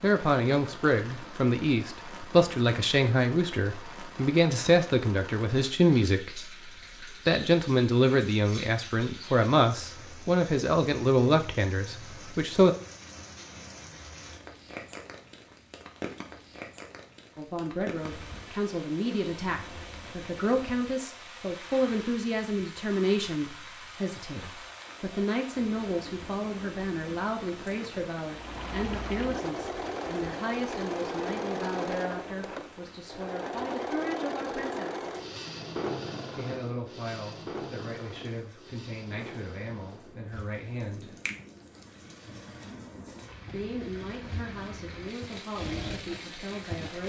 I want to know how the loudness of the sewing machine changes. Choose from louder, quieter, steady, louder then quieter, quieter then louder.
quieter then louder.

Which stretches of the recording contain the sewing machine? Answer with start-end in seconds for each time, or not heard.
28.2-47.0.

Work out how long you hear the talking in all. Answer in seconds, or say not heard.
39 s.